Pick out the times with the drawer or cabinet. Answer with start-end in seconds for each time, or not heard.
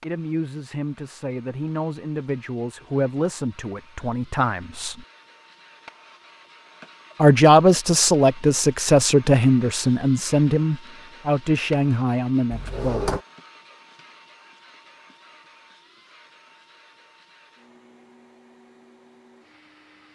12.5-13.2.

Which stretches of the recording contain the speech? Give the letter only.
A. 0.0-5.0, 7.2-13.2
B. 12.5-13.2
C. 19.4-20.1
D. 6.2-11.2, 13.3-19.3
A.